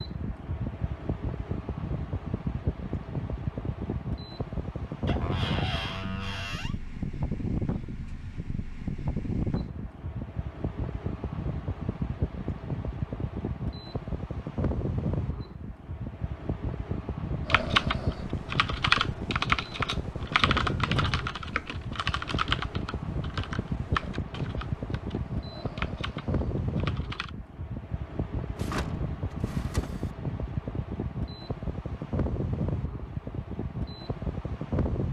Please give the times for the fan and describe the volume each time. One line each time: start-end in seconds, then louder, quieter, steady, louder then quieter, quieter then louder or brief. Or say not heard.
0.0-35.0 steady.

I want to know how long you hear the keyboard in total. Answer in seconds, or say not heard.
10 s.